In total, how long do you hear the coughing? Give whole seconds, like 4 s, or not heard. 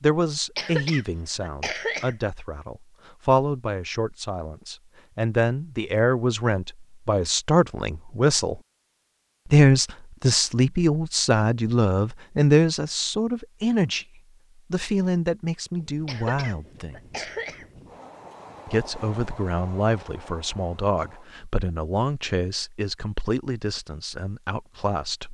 3 s.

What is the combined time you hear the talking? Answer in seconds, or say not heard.
23 s.